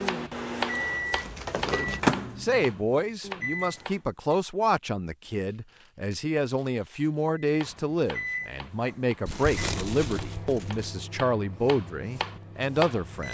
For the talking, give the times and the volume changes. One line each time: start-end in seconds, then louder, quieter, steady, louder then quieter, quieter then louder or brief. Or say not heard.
1.6-13.2 steady.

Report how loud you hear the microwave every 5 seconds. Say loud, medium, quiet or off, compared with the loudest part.
loud, medium, quiet.